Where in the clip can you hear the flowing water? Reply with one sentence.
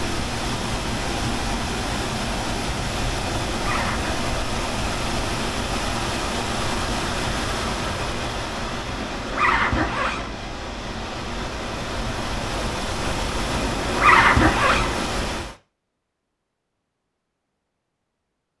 The flowing water can be heard from 0.0 to 15.6 s.